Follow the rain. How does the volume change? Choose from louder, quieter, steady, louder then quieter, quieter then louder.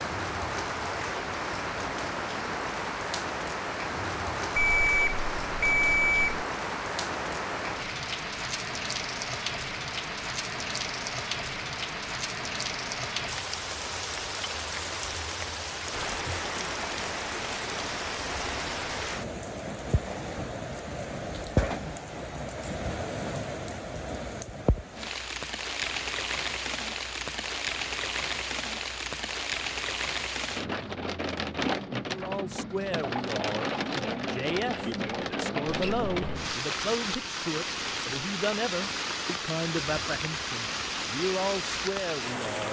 steady.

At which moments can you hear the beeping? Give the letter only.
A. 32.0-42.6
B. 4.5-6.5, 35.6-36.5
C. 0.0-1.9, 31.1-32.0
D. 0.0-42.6
B.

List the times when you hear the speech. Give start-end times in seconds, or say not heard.
32.0-42.6.